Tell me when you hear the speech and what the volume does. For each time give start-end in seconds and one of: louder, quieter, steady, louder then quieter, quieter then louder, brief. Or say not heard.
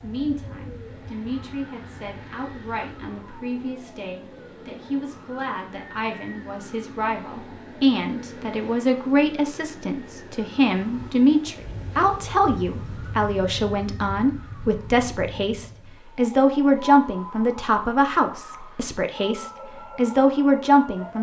0.0-21.1 louder.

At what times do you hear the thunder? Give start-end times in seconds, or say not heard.
not heard.